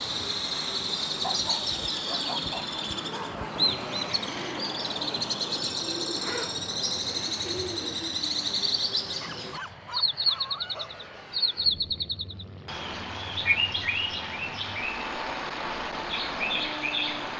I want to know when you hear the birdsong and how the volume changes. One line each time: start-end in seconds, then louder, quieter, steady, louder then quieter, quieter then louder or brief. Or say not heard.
0.0-17.3 steady.